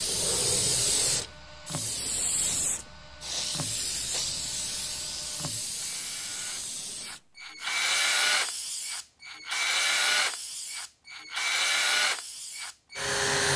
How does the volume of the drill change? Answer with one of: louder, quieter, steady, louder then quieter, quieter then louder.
louder.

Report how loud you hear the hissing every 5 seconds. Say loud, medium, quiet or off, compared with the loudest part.
loud, medium, medium.